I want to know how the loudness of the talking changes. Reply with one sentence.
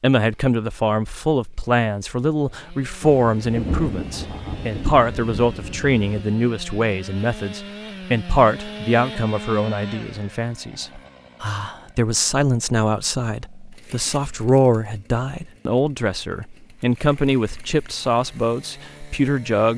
The loudness of the talking stays about the same.